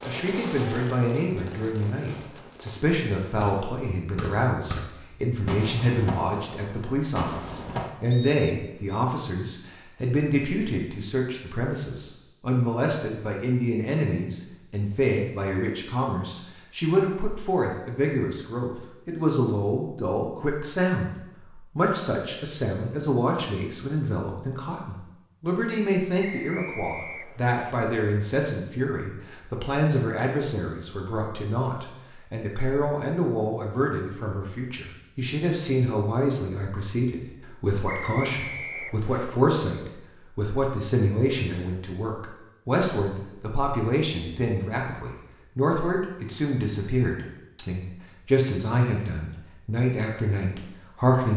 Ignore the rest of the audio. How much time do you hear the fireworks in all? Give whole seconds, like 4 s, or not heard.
8 s.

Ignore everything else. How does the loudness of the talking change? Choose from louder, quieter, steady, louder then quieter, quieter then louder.
steady.